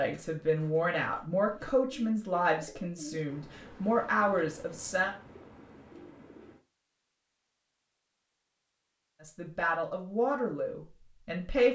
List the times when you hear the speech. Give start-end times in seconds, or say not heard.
0.0-5.2, 9.2-11.6.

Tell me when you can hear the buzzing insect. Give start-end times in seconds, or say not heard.
not heard.